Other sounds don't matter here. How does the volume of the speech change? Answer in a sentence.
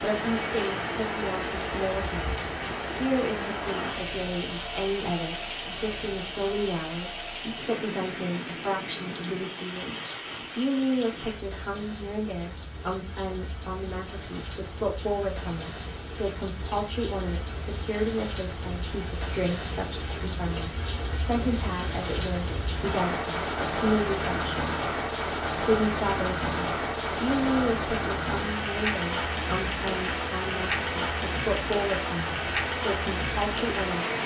The loudness of the speech stays about the same.